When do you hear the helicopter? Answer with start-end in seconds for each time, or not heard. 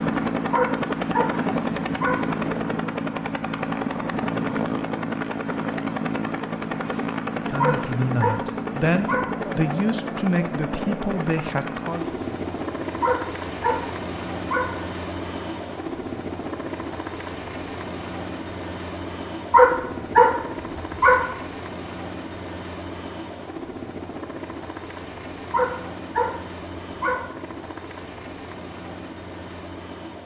0.0-30.2.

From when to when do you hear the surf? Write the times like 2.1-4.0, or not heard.
not heard.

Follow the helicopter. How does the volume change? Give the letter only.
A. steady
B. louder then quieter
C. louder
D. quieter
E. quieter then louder
D.